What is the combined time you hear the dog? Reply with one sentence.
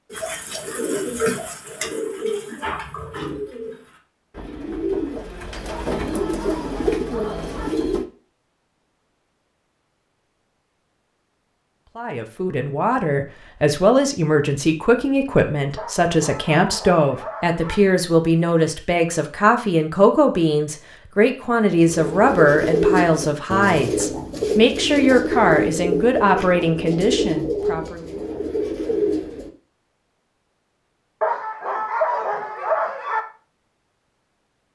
You can hear the dog for 6 seconds altogether.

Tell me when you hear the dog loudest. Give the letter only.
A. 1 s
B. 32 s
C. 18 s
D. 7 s
B.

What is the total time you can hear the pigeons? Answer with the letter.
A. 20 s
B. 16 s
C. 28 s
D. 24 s
B.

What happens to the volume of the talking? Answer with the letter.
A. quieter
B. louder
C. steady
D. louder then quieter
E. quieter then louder
C.